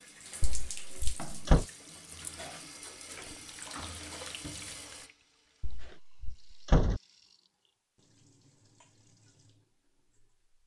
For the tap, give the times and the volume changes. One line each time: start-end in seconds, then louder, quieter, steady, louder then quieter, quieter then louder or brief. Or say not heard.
0.0-10.5 quieter.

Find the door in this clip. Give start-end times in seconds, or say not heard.
0.4-1.6, 5.6-7.0.